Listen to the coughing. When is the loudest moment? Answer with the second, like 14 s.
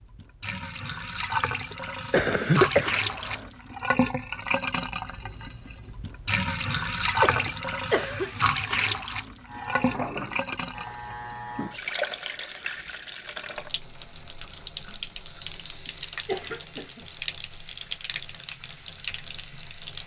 3 s.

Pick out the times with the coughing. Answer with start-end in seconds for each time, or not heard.
1.7-3.4, 7.2-8.3, 16.2-17.1.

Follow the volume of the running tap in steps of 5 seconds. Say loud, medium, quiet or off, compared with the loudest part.
loud, loud, medium, medium.